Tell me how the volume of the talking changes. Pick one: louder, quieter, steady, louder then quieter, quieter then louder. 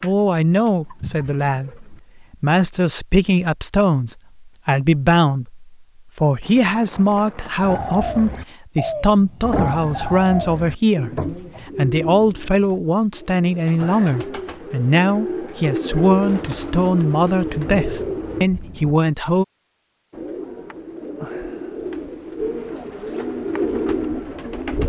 steady.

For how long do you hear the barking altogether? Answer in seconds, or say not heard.
not heard.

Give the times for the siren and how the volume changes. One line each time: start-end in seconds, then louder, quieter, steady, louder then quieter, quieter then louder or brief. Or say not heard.
not heard.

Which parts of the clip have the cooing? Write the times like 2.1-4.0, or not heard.
0.0-2.0, 7.6-18.5, 20.1-24.8.